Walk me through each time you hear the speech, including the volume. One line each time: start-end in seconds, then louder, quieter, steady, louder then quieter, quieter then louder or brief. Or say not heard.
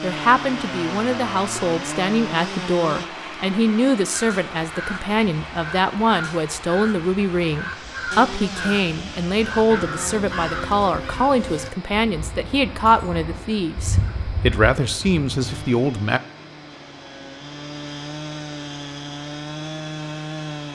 0.0-16.2 steady.